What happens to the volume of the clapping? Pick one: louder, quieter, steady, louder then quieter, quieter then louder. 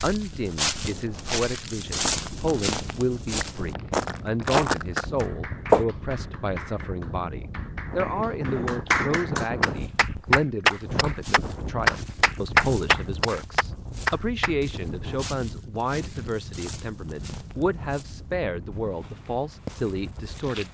louder.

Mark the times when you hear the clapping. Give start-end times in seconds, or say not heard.
3.2-14.6.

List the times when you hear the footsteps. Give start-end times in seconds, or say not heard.
0.0-5.8, 9.6-20.6.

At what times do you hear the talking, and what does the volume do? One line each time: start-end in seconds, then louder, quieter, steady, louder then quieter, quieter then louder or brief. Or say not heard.
0.0-20.6 steady.